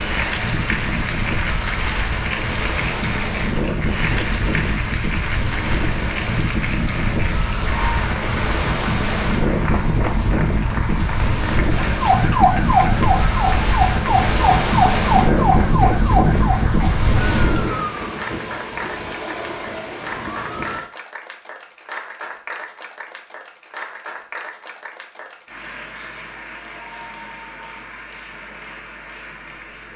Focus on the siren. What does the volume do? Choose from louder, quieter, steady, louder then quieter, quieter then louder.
quieter.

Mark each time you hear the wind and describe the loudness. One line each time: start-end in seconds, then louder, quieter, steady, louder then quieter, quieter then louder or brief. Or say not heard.
0.0-17.9 louder.